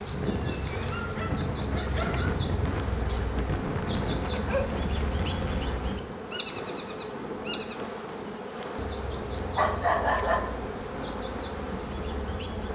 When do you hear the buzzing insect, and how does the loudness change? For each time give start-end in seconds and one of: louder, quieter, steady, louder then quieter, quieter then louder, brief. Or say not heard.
0.0-12.6 steady.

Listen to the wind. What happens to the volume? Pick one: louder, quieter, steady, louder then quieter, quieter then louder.
quieter.